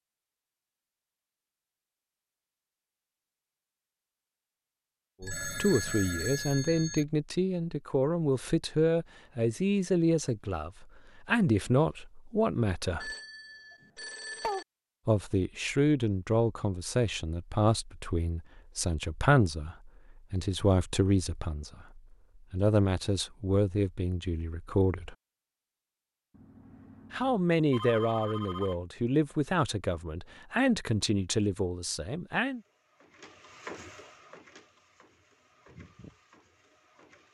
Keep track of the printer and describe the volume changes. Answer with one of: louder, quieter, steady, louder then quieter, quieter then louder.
louder then quieter.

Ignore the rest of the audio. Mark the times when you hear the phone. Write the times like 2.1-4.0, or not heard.
5.2-7.0, 13.0-14.7, 26.3-28.8.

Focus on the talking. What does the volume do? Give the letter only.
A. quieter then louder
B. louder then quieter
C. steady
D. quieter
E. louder
C.